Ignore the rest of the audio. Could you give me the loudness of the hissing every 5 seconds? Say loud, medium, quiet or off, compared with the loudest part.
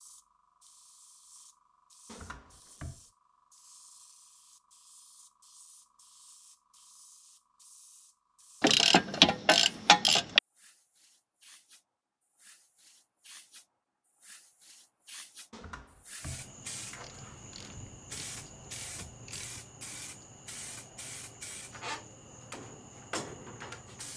quiet, quiet, quiet, loud, loud.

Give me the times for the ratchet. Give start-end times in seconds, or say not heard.
8.6-10.4, 17.0-19.6.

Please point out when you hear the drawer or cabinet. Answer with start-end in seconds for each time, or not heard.
2.0-3.0, 15.5-16.5.